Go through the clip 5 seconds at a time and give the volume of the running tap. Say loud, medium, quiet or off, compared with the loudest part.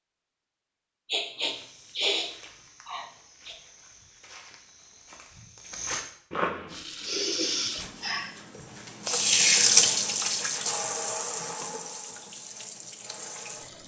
off, loud, medium.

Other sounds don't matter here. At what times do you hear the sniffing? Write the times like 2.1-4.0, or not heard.
1.1-3.5, 7.0-8.3.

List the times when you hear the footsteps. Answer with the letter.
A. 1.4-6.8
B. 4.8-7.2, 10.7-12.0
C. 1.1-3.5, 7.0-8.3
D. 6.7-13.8
A.